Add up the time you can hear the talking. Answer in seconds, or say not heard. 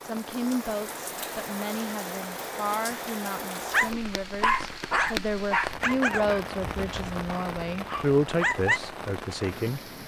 10 s.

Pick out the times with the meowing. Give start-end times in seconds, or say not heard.
not heard.